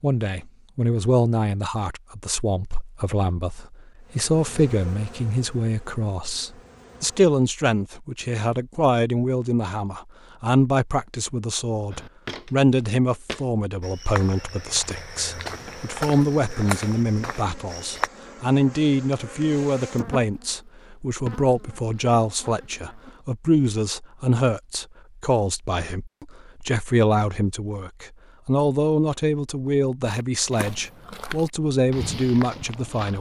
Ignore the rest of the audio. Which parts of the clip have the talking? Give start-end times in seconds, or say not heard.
0.0-33.1.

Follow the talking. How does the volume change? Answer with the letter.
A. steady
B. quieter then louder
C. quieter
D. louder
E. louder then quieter
A.